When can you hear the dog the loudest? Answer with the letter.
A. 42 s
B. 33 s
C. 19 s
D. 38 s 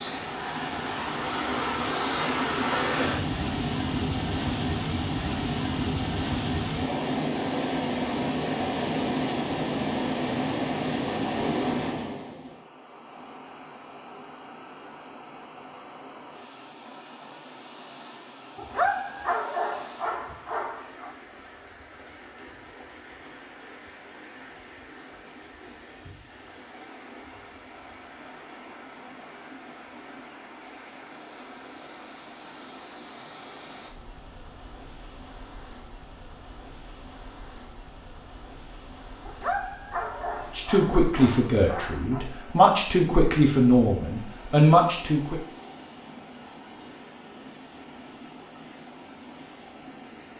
C.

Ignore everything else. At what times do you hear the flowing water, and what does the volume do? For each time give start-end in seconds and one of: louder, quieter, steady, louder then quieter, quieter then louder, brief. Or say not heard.
0.0-50.3 quieter.